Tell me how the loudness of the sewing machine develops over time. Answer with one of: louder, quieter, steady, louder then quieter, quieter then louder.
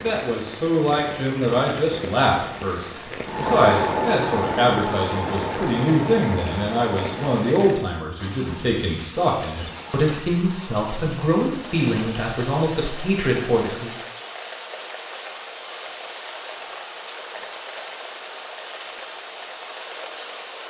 quieter.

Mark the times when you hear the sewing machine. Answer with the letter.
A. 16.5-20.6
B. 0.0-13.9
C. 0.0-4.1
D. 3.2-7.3
D.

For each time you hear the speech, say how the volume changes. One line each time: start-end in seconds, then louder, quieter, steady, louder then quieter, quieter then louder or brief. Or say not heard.
0.0-13.9 steady.